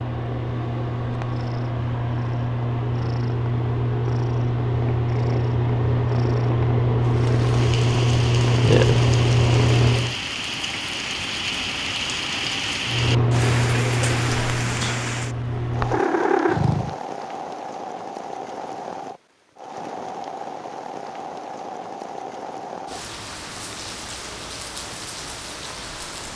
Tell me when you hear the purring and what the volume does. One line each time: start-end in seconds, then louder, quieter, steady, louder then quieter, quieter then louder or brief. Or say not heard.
0.0-10.2 louder
12.8-16.9 quieter then louder.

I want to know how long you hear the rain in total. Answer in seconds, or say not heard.
19 s.